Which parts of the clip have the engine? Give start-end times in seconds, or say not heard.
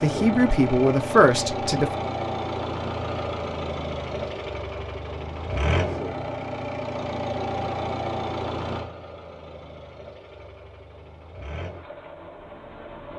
0.0-13.1.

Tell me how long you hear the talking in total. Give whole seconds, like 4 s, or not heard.
2 s.